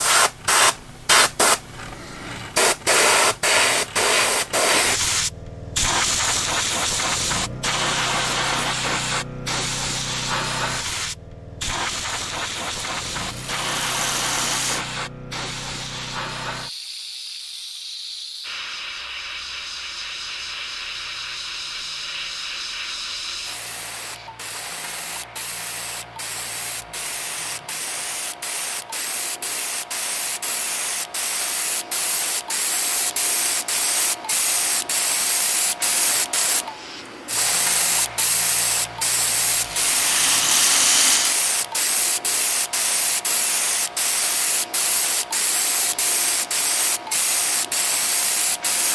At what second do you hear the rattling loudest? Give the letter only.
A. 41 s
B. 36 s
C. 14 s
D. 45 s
A.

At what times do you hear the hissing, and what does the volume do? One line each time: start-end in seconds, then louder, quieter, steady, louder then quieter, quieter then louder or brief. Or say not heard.
0.0-48.8 quieter then louder.